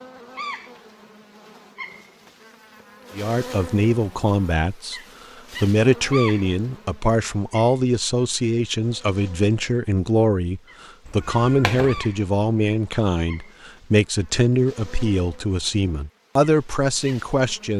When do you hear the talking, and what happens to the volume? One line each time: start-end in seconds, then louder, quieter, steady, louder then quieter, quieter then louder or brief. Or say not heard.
3.1-5.0 brief
5.6-17.7 steady.